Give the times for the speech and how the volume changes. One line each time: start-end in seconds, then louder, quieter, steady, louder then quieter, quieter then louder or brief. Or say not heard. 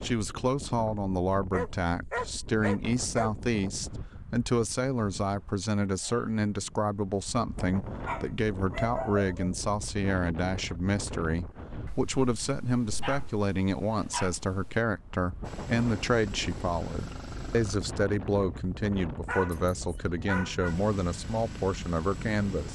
0.0-22.7 steady.